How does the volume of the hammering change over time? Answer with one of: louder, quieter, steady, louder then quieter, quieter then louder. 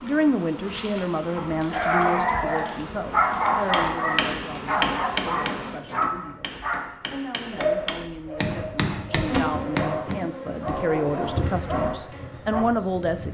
quieter then louder.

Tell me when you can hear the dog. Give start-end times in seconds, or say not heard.
1.4-12.7.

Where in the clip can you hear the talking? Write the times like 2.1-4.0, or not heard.
0.0-13.2.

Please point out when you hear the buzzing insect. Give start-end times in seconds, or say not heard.
0.0-5.8, 9.2-13.2.